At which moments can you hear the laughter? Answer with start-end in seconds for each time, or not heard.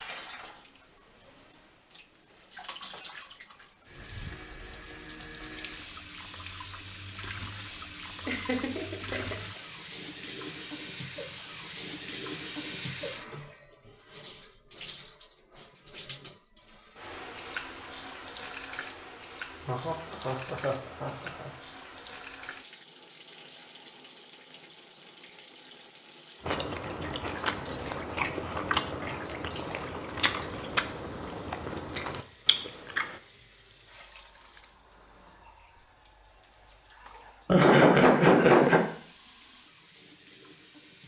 8.2-9.7, 19.6-21.6, 37.5-38.8.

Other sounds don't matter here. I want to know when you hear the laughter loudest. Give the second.
38 s.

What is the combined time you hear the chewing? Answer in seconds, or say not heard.
7 s.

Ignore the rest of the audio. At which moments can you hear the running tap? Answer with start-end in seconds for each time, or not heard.
0.0-41.0.